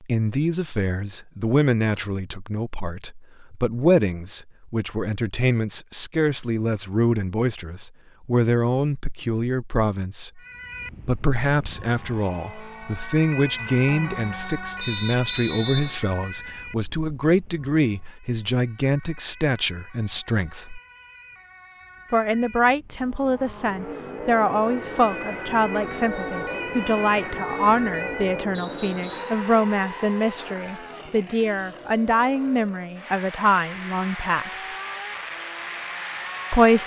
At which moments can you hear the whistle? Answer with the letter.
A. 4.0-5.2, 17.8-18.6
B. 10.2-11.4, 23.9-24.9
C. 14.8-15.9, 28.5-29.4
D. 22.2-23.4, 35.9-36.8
C.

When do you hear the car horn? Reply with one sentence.
You can't hear the car horn here.